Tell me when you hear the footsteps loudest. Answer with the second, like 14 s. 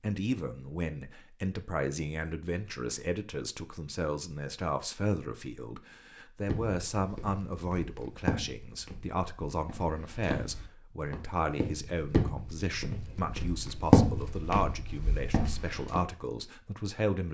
14 s.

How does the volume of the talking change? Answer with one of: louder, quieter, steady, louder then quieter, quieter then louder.
steady.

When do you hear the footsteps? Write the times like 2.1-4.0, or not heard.
6.5-16.0.